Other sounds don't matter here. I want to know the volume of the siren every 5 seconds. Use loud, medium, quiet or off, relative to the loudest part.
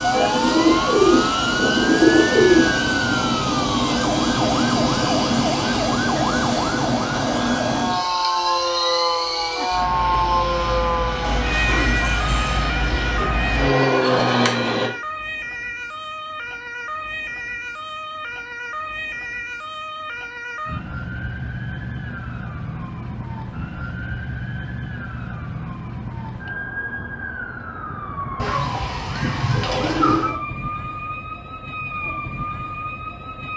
loud, loud, loud, medium, medium, medium, medium.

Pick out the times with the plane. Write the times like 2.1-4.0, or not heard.
0.0-14.9.